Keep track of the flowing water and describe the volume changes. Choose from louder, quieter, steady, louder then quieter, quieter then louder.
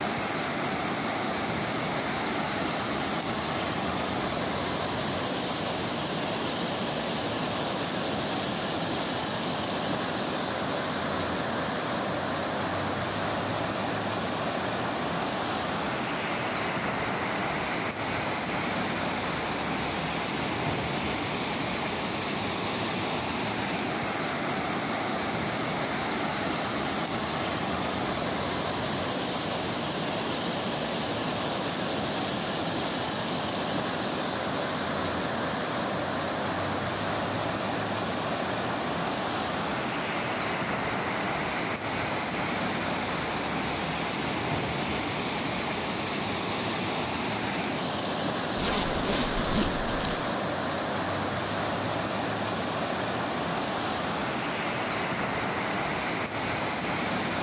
steady.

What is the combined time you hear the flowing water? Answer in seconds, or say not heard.
57 s.